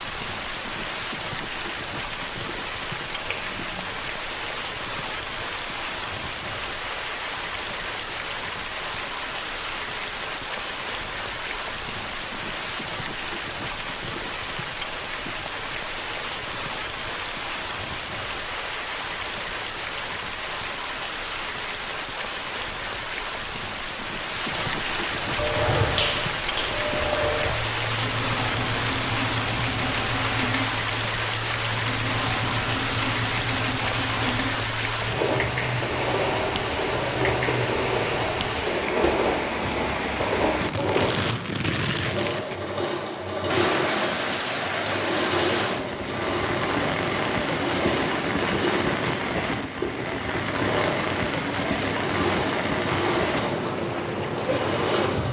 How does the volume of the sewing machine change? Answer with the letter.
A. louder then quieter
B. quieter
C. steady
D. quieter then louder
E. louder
C.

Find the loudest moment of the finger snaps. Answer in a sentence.
The loudest moment of the finger snaps is at 26 seconds.